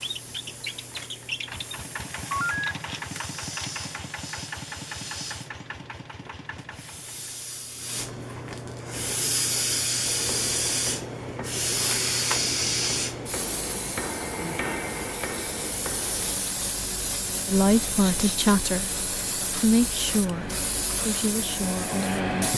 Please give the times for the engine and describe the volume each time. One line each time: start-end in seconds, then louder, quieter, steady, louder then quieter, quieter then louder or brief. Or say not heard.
0.0-7.3 quieter.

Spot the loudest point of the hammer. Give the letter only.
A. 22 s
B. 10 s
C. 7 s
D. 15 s
D.